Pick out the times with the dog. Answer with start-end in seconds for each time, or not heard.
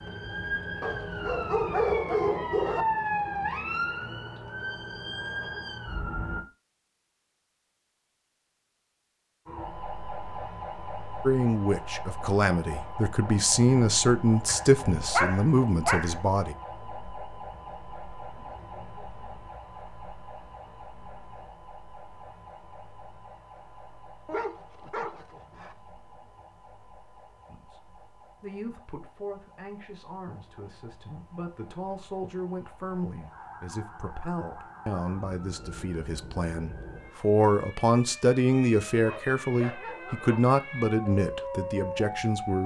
0.8-2.9, 14.4-16.1, 24.2-25.8, 39.0-40.5.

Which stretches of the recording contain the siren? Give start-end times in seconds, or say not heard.
0.0-6.5, 9.4-42.6.